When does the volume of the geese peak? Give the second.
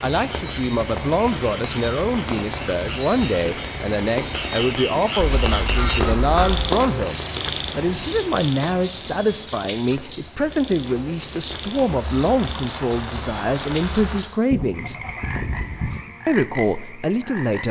6 s.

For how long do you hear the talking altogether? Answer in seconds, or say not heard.
16 s.